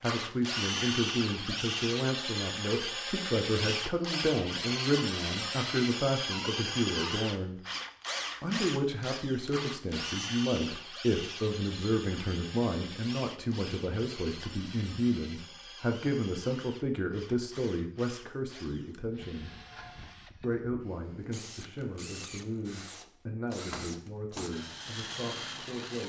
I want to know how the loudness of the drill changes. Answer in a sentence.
The volume of the drill goes down, then up.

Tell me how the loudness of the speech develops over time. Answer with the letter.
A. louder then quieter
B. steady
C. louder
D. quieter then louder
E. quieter
E.